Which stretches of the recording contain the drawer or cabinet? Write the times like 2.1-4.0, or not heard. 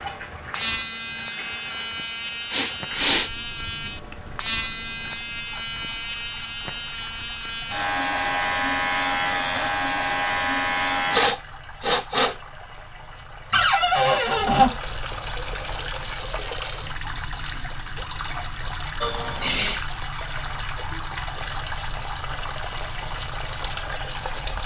13.5-14.7.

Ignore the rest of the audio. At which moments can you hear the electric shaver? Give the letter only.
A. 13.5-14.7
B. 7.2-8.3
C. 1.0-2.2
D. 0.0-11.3
D.